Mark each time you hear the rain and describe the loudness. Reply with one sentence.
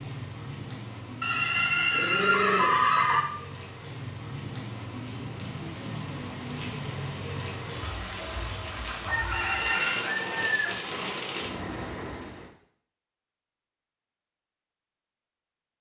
You can hear the rain from 0.0 to 12.6 s, getting louder.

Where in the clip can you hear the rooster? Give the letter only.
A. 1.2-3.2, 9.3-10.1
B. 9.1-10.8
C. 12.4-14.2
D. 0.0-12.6
B.